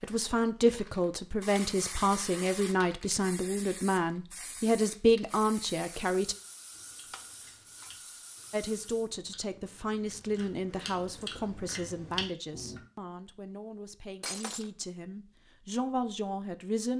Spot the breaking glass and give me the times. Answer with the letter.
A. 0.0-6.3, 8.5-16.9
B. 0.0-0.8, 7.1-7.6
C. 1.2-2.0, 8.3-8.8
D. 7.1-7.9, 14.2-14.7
D.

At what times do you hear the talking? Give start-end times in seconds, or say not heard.
0.0-6.3, 8.5-16.9.